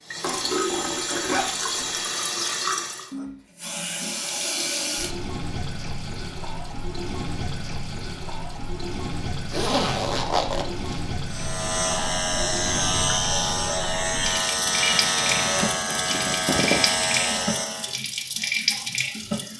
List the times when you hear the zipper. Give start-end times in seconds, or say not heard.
0.2-2.0, 9.5-11.0, 14.9-16.9.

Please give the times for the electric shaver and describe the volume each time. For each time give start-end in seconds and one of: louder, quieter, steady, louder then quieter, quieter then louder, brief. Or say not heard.
11.2-17.9 steady.